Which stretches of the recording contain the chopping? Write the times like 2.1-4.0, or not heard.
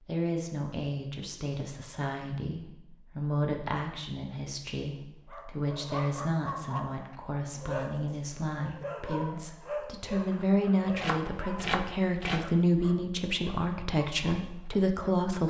10.9-12.5.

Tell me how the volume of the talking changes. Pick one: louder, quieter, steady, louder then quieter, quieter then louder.
louder.